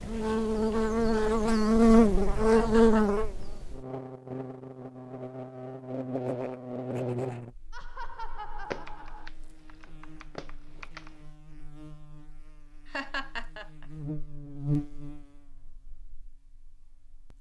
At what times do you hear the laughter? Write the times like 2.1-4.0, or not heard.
2.5-3.5, 7.7-9.3, 12.9-13.8.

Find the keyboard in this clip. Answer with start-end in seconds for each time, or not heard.
8.7-11.2.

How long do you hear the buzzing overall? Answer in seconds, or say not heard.
17 s.